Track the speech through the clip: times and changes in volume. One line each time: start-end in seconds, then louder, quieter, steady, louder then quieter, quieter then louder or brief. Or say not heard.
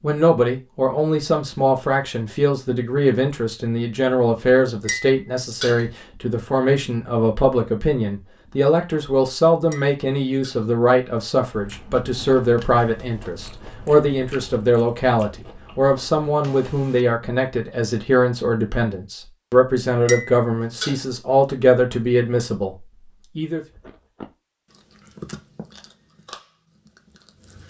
0.0-23.6 steady.